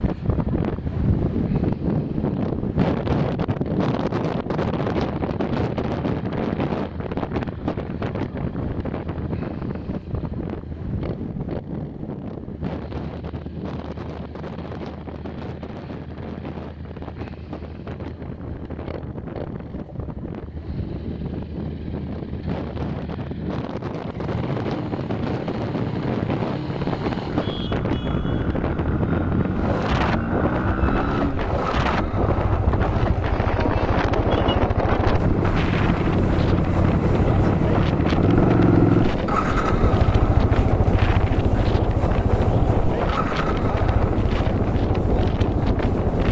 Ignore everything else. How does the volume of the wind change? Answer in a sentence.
The loudness of the wind goes down, then up.